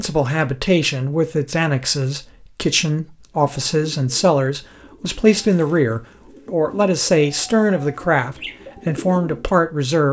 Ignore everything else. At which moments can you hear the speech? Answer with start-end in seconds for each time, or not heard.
0.0-10.0.